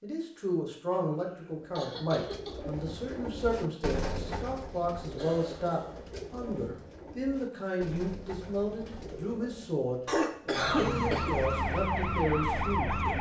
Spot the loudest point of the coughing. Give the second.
11 s.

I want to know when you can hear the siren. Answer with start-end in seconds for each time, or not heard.
10.5-13.1.